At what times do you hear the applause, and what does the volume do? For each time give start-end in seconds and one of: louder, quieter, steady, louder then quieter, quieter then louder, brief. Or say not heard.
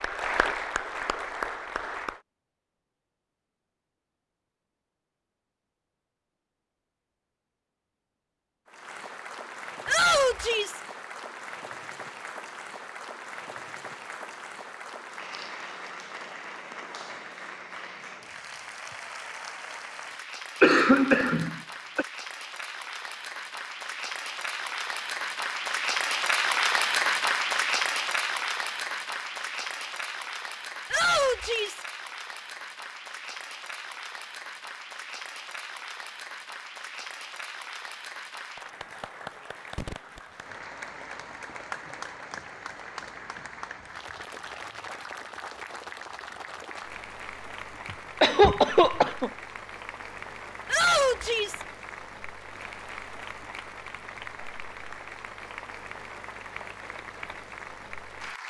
0.0-2.2 brief
8.7-58.4 louder then quieter.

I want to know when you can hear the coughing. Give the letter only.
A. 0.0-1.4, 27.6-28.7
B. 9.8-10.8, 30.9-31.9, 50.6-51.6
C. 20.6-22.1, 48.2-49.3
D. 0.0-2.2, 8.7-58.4
C.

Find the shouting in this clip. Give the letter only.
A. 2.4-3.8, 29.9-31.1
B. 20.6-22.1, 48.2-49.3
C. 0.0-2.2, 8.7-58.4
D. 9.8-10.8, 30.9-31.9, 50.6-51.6
D.